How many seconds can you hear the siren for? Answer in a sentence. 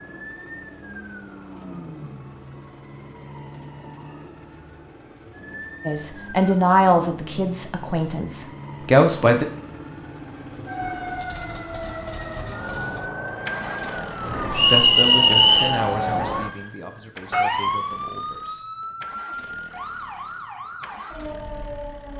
The siren can be heard for 22 seconds in total.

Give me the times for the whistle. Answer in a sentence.
You can hear the whistle from 14.5 to 15.8 s.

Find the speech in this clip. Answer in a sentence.
You can hear the speech from 5.8 to 9.4 s and from 14.7 to 18.6 s.